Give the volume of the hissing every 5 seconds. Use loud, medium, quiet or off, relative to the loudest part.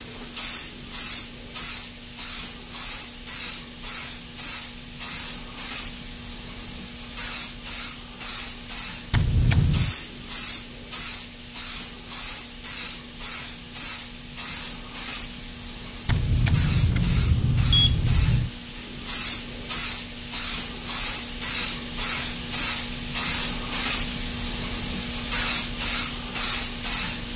medium, medium, medium, medium, loud, loud.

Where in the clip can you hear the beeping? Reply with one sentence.
The beeping can be heard from 9.1 to 9.9 s and from 16.1 to 18.5 s.